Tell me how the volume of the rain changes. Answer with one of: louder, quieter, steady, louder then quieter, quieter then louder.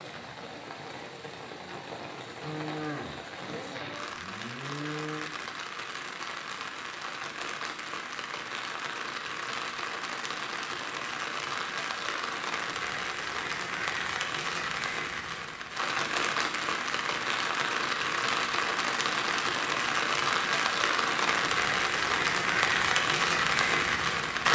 louder.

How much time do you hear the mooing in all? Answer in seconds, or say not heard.
3 s.